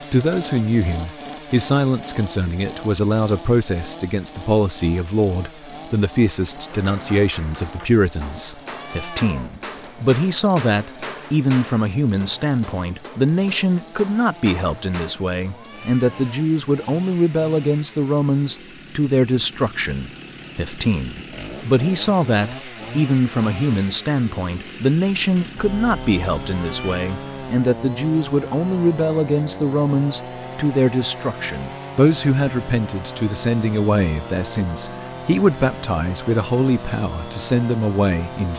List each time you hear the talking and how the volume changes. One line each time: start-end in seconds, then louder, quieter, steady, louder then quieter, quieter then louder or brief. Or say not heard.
0.1-38.5 steady.